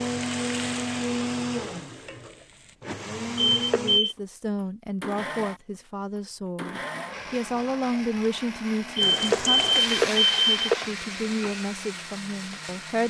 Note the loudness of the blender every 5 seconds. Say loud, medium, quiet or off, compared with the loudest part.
loud, medium, medium.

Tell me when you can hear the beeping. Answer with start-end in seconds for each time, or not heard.
3.4-4.2, 8.9-10.8.